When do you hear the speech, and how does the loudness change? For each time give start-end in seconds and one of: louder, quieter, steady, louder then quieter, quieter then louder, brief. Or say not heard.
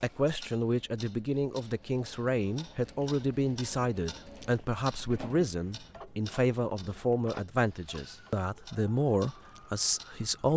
0.0-10.5 steady.